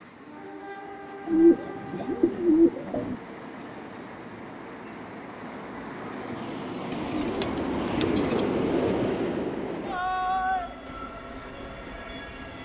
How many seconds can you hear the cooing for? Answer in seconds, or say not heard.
4 s.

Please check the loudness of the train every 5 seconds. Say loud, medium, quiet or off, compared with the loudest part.
medium, loud, loud.